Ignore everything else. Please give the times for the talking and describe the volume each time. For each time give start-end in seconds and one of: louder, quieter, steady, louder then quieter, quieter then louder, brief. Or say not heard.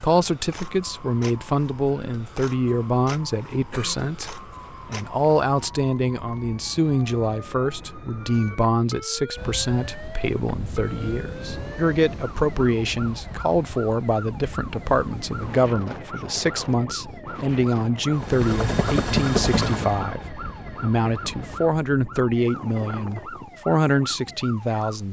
0.0-25.0 steady.